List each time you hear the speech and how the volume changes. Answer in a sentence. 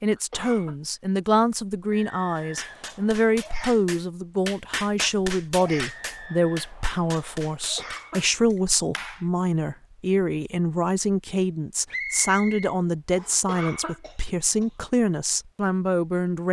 The speech can be heard from 0.0 to 16.4 s, at a steady volume.